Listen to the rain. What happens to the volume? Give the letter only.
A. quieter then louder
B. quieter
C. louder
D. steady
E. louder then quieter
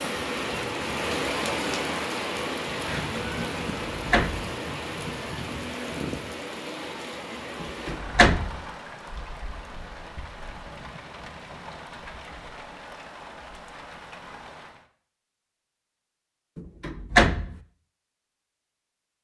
B.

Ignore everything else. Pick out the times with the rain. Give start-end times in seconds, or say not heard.
0.0-14.9.